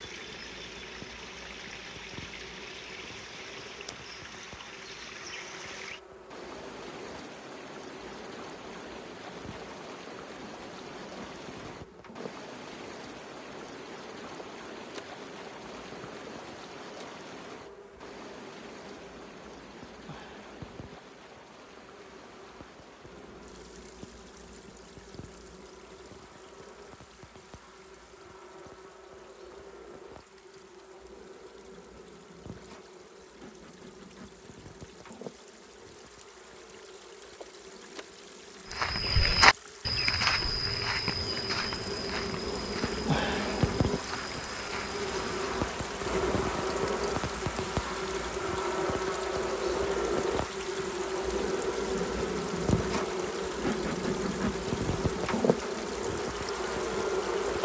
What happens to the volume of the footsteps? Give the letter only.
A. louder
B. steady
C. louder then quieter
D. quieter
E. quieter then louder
D.